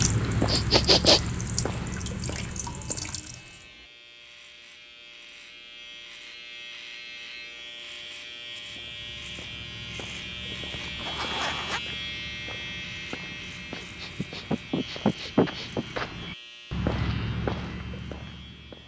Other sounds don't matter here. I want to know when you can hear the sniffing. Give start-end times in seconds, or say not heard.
0.5-1.2, 13.8-15.8.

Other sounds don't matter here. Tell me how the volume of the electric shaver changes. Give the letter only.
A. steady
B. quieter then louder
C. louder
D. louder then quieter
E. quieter
D.